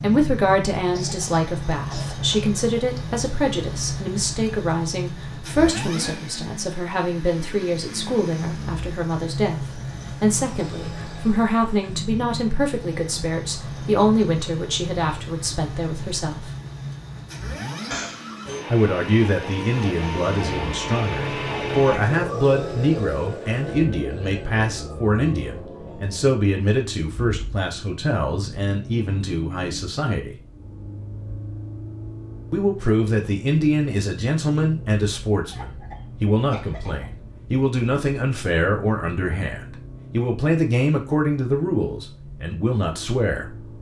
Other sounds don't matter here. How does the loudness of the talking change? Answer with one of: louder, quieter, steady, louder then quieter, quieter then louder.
steady.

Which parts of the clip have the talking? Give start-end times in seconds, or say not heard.
0.0-16.5, 18.7-30.4, 32.5-43.5.